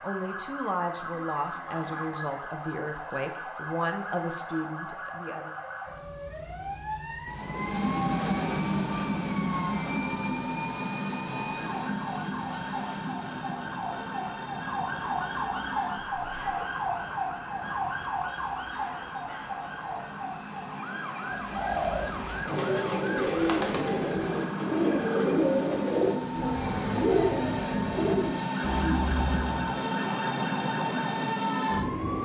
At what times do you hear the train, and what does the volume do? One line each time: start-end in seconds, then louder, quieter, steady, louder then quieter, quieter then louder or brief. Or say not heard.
7.2-32.2 quieter then louder.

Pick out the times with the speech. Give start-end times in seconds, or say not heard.
0.0-5.5.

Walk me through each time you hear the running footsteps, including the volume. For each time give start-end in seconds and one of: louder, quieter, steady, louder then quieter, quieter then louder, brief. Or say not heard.
not heard.